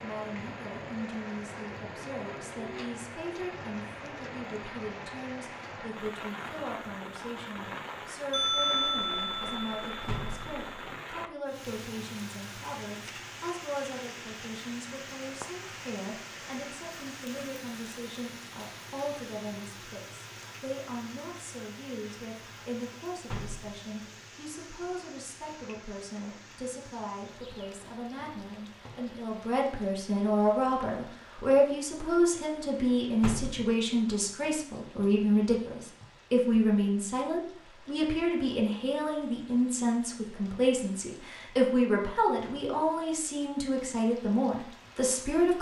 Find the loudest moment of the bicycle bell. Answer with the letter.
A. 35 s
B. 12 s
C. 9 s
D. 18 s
C.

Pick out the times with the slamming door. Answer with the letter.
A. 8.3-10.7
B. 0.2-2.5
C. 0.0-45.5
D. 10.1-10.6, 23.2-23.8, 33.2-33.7
D.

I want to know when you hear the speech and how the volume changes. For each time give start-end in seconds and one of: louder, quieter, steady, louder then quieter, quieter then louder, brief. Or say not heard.
0.0-45.5 louder.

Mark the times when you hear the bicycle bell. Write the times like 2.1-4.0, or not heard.
8.3-10.7.